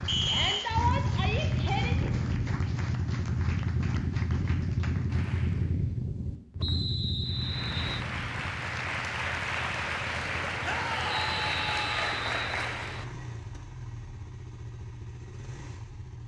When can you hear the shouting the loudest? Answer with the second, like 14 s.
1 s.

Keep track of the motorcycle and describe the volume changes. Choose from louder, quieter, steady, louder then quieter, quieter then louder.
quieter.